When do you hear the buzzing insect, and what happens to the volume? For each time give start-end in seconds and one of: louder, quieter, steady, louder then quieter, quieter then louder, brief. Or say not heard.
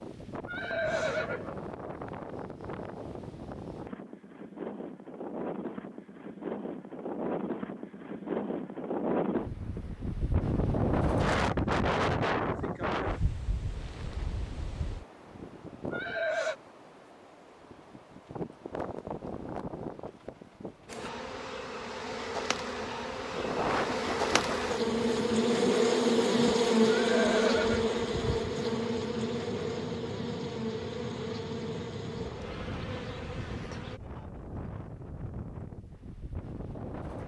20.9-34.0 louder then quieter.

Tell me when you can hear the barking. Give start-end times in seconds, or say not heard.
not heard.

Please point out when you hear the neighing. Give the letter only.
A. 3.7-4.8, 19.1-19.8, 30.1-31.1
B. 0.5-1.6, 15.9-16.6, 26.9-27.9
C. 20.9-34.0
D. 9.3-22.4
B.